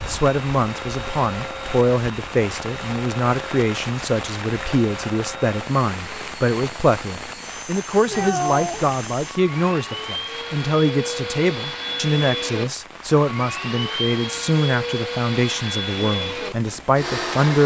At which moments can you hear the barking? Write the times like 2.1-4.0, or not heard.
not heard.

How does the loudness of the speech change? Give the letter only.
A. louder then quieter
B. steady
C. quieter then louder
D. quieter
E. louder
B.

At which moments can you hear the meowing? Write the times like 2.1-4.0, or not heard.
8.1-9.0.